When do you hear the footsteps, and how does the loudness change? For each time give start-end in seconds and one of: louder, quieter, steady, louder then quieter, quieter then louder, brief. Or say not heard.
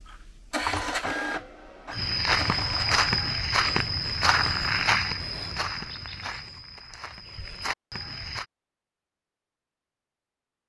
1.9-8.4 quieter.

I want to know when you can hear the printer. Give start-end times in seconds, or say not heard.
0.0-3.0.